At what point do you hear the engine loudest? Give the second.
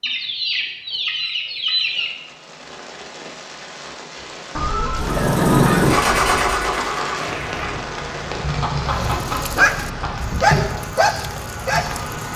6 s.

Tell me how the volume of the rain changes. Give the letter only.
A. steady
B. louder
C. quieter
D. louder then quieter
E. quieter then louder
B.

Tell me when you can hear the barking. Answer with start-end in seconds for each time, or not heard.
8.8-12.3.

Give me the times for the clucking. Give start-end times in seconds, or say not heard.
0.0-2.1, 4.5-6.7, 8.6-10.2.